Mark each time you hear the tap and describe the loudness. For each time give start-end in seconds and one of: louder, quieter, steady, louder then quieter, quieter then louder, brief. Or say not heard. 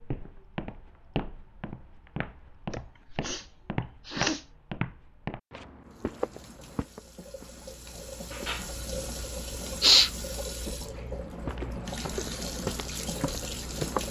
5.8-14.0 louder.